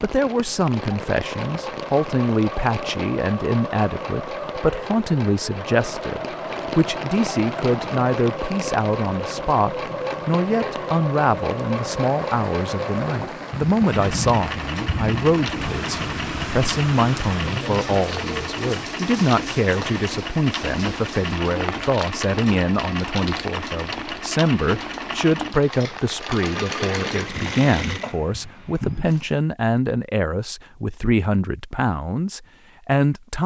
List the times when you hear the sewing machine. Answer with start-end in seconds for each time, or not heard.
0.0-29.4.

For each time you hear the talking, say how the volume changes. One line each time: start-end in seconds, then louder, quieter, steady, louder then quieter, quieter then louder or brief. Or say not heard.
0.0-33.4 steady.